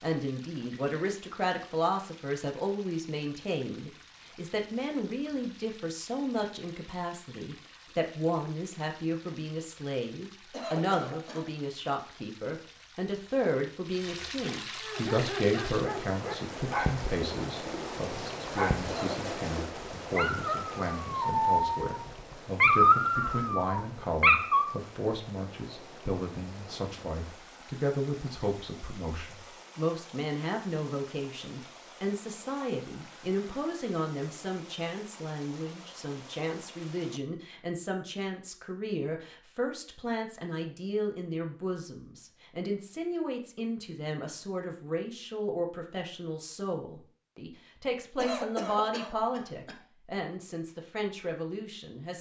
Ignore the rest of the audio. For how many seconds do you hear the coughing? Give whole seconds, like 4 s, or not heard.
3 s.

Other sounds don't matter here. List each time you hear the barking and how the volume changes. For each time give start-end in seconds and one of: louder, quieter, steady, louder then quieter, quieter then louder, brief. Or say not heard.
14.8-22.0 louder
22.6-24.8 brief.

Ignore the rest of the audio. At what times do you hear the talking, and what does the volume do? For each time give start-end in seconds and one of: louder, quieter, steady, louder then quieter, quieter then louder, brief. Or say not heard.
0.0-52.1 steady.